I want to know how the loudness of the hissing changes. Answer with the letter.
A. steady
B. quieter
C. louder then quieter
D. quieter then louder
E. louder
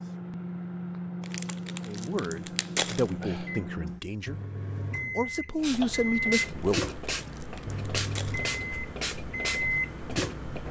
A.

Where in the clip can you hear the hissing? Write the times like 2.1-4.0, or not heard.
5.5-10.6.